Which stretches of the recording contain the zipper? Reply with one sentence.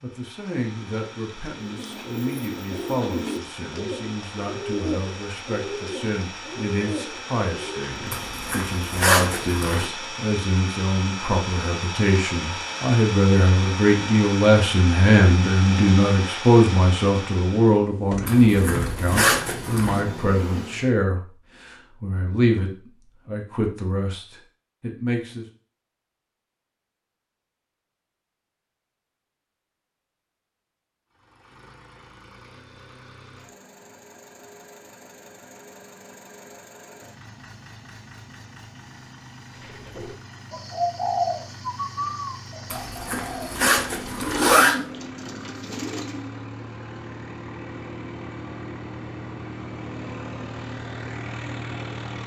You can hear the zipper from 8.1 to 9.9 s, from 18.2 to 20.0 s and from 42.7 to 44.8 s.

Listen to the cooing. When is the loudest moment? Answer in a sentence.
The volume of the cooing peaks at 41 seconds.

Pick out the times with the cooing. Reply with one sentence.
The cooing can be heard from 1.6 to 8.4 s and from 39.6 to 46.3 s.